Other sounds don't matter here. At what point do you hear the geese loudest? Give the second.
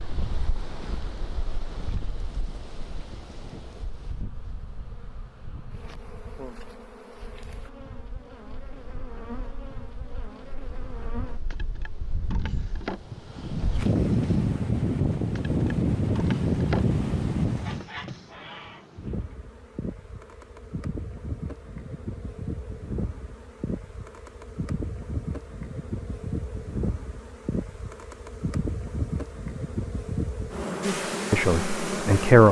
18 s.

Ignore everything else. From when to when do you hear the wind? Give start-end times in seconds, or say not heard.
0.0-17.9.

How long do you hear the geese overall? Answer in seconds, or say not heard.
2 s.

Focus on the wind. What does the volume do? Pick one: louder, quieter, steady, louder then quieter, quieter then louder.
quieter then louder.